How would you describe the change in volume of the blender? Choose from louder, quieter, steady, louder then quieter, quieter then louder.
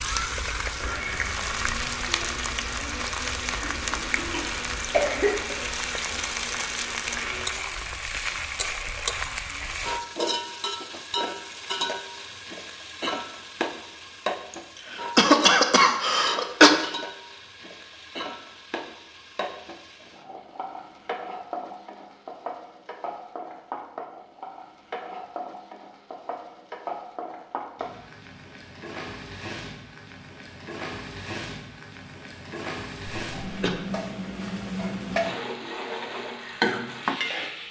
steady.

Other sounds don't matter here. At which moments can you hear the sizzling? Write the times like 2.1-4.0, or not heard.
0.0-37.6.